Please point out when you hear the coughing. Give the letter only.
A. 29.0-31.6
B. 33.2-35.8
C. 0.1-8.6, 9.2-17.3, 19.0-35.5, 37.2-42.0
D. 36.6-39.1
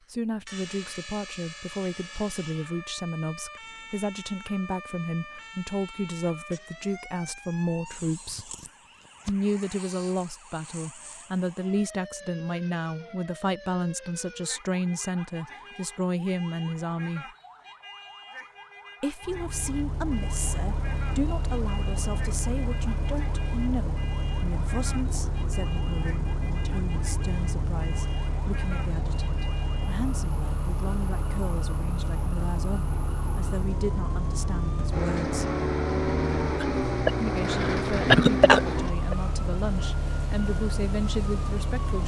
D.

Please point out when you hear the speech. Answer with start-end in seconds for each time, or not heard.
0.1-8.6, 9.2-17.3, 19.0-35.5, 37.2-42.0.